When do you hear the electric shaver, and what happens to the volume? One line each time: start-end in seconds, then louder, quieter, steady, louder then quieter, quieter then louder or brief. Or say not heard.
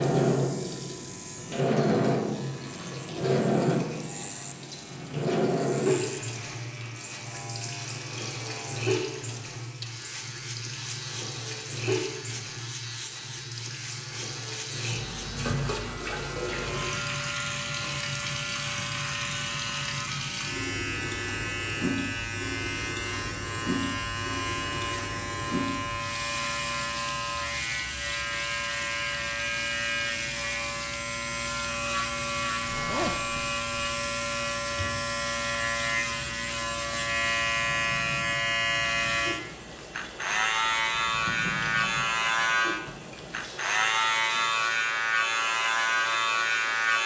0.0-47.0 louder.